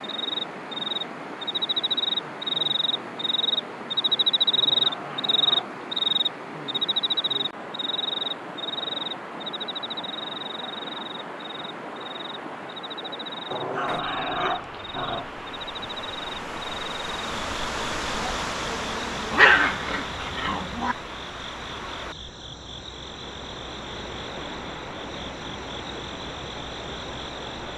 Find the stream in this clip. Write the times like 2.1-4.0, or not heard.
0.0-27.7.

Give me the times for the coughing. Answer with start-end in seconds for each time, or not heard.
not heard.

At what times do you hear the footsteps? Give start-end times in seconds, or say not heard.
not heard.